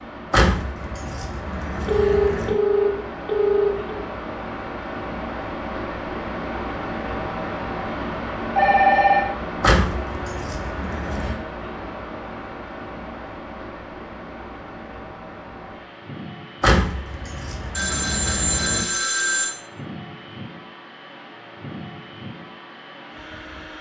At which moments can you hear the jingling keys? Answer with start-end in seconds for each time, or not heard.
0.3-2.5, 9.6-11.3, 16.6-18.9.